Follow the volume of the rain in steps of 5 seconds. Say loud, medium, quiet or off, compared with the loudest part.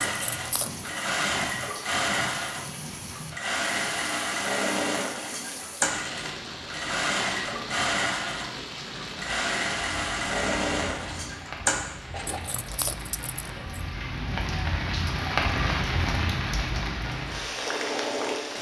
medium, medium, medium, loud.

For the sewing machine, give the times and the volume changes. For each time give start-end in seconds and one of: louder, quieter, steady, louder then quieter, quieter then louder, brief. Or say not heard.
0.0-12.7 steady
17.0-18.5 brief.